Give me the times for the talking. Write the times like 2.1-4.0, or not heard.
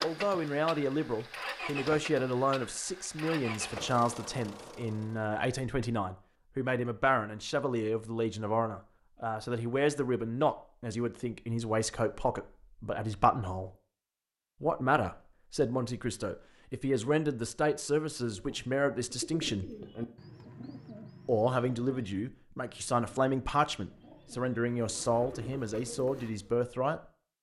0.0-13.7, 14.6-19.7, 21.2-27.0.